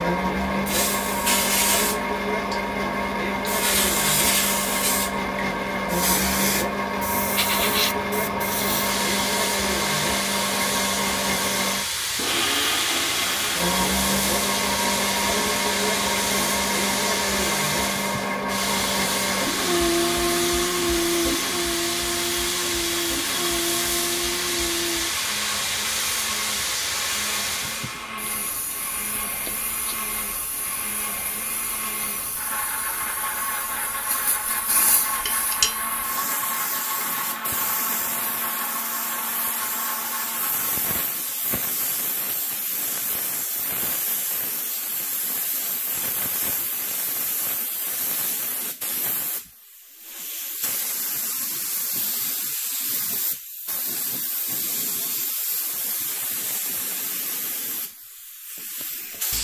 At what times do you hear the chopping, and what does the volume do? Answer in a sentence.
The chopping can't be heard in this clip.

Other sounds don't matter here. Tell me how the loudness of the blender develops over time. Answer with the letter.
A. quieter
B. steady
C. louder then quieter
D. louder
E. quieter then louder
A.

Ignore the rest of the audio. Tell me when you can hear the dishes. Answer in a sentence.
You can hear the dishes from 35.1 to 35.8 s.